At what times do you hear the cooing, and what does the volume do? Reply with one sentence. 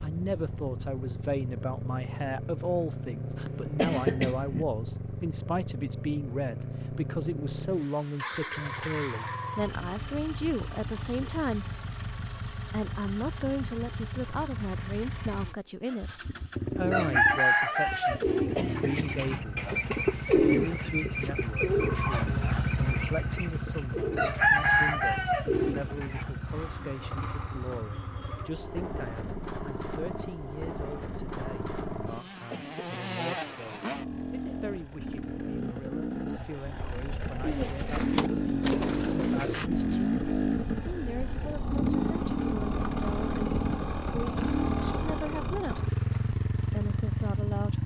You can hear the cooing from 16.8 to 26.2 s, getting quieter then louder; and briefly from 37.4 to 39.7 s.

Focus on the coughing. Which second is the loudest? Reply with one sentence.
The volume of the coughing peaks at 4 seconds.